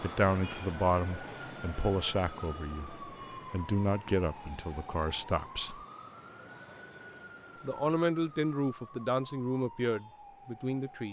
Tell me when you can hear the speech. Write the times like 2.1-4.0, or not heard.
0.0-5.8, 7.6-11.0.